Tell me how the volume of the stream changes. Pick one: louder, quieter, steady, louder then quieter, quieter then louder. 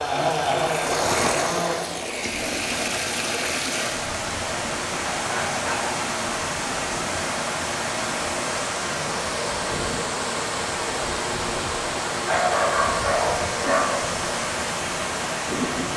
steady.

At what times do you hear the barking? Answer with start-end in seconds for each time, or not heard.
5.3-6.0, 12.2-14.0.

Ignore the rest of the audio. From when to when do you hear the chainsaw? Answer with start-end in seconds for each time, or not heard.
0.0-1.8.